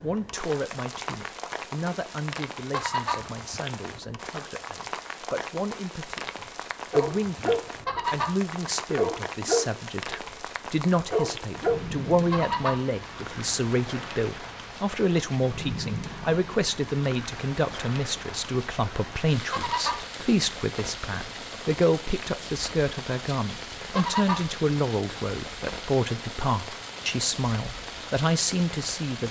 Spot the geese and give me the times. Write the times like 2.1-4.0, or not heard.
2.7-3.2, 7.8-8.3, 12.3-12.8, 19.5-20.1, 23.9-24.4.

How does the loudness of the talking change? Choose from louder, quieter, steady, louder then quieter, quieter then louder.
louder.